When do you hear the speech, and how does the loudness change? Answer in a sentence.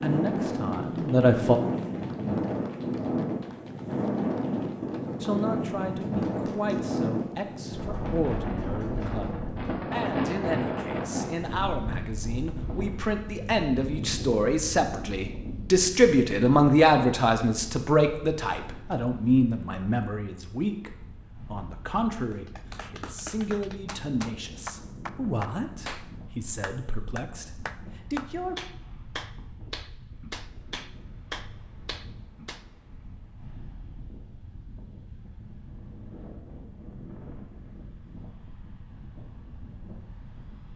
You can hear the speech briefly from 0.0 to 1.6 s; and from 5.2 to 28.6 s, getting louder then quieter.